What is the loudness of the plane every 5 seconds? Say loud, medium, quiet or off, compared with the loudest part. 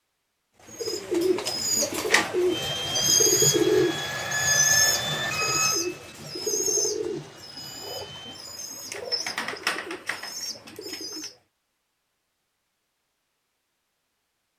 loud, medium, off.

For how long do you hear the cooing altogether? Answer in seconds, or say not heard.
11 s.